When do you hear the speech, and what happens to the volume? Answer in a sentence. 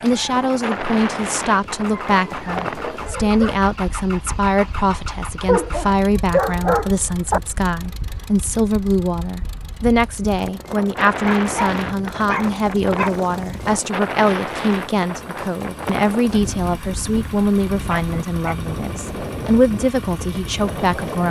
The speech can be heard from 0.0 to 21.2 s, at a steady volume.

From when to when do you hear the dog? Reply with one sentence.
You can hear the dog from 2.0 to 3.7 s, from 5.4 to 7.4 s, from 11.2 to 13.8 s and from 17.9 to 18.6 s.